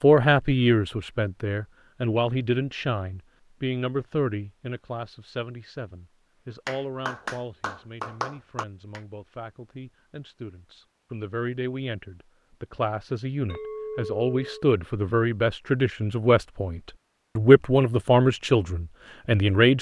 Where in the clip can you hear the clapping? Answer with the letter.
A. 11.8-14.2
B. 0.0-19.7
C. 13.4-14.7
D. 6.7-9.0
D.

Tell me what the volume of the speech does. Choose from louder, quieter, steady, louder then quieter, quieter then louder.
quieter then louder.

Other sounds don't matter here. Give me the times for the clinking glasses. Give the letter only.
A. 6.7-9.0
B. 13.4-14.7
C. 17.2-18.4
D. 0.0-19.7
B.